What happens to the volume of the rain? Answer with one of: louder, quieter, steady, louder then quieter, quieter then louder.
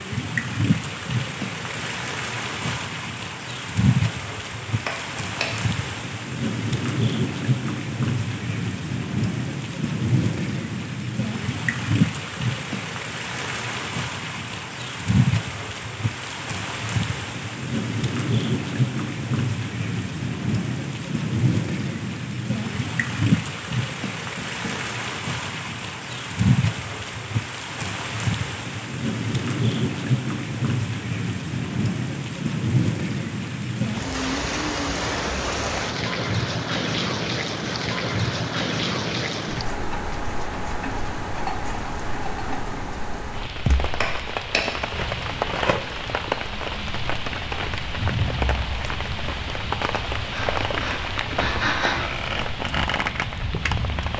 steady.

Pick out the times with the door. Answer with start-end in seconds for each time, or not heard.
4.8-5.5, 24.4-24.9, 44.0-44.6.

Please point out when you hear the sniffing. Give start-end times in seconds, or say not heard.
50.3-52.0.